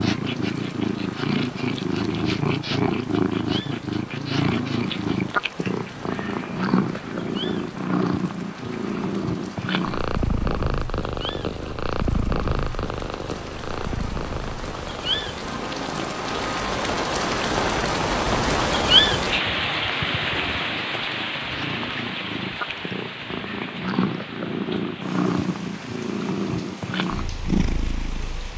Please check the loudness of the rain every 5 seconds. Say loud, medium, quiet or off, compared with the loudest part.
quiet, quiet, quiet, loud, medium, quiet.